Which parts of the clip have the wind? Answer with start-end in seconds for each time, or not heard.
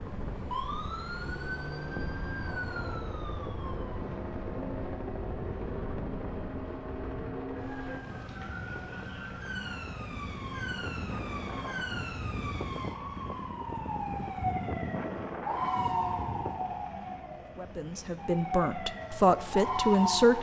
0.0-16.8.